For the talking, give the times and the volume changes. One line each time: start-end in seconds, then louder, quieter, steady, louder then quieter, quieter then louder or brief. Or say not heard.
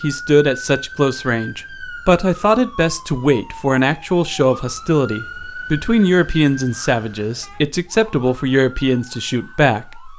0.0-10.1 steady.